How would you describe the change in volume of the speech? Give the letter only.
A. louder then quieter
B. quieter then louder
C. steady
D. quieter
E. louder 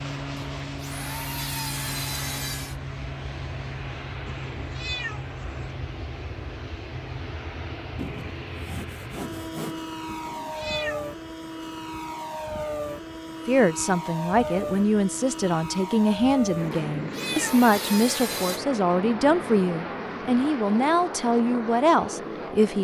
C.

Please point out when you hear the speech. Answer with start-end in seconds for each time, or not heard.
13.4-22.7.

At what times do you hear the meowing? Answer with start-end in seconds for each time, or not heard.
4.2-5.8, 10.1-11.2, 16.9-17.7.